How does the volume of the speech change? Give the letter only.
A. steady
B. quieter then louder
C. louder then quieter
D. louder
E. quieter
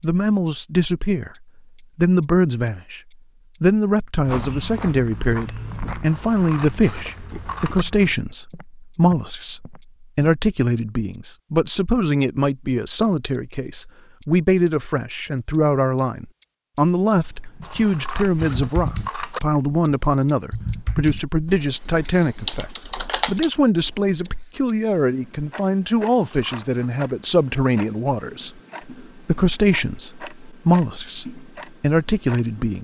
A.